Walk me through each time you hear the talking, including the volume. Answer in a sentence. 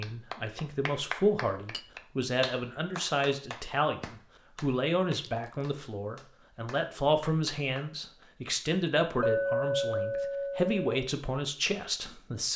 You can hear the talking from 0.0 to 12.5 s, at a steady volume.